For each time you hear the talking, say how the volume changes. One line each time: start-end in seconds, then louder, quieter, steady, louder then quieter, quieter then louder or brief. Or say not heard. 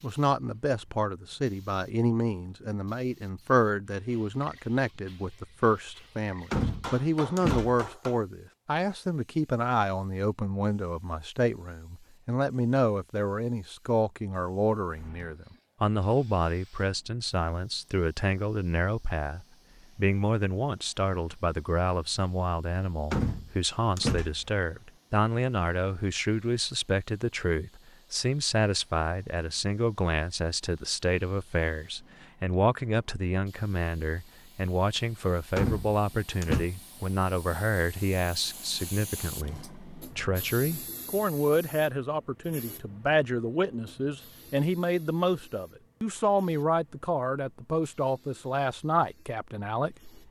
0.0-50.2 steady.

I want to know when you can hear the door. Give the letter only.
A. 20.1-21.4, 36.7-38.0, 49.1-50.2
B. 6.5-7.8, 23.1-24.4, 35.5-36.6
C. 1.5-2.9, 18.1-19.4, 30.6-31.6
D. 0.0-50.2
B.